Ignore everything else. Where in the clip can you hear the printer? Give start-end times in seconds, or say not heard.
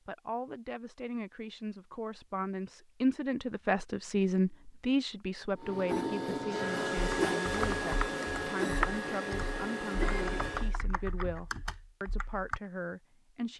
5.5-10.8.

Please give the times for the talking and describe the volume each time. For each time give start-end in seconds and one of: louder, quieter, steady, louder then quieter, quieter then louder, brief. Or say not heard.
0.1-13.5 louder then quieter.